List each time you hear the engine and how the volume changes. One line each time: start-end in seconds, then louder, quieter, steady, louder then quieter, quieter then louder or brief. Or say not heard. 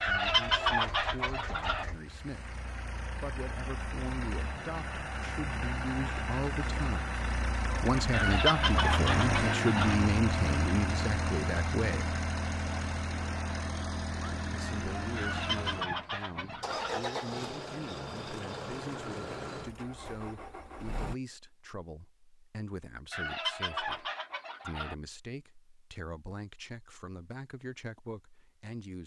0.0-21.1 louder then quieter.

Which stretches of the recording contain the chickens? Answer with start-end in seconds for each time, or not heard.
0.0-1.9, 8.1-9.9, 15.2-17.0, 23.1-24.9.